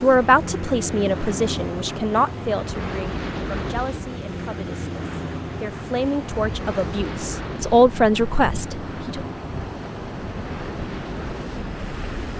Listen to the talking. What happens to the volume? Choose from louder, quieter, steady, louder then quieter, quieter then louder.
quieter then louder.